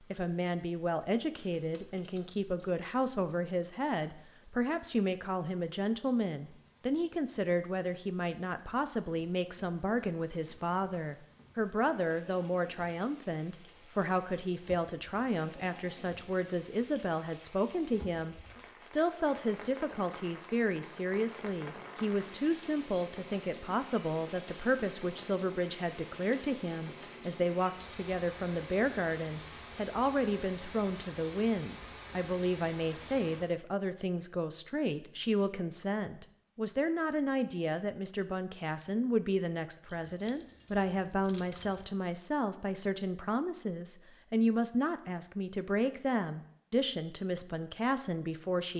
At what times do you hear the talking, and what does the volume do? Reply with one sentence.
You can hear the talking from 0.1 to 48.7 s, at a steady volume.